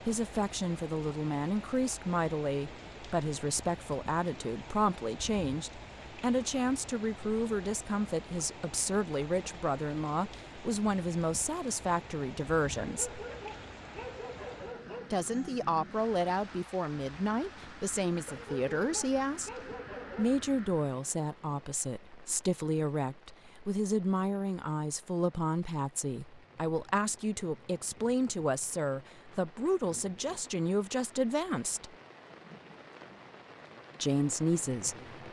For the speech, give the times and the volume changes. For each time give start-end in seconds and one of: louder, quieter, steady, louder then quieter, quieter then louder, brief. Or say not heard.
0.1-13.2 steady
15.1-31.9 steady
34.0-35.1 brief.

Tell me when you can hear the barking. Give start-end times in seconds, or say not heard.
12.8-15.2, 18.2-20.4.